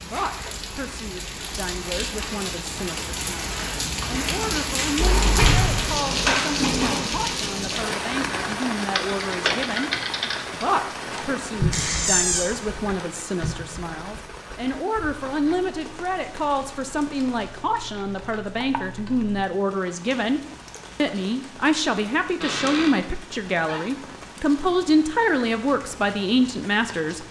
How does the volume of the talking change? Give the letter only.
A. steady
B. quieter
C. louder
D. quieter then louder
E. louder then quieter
C.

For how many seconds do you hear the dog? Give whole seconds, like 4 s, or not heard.
not heard.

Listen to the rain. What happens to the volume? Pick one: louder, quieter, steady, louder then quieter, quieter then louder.
quieter.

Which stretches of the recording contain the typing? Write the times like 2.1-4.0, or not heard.
8.8-19.4.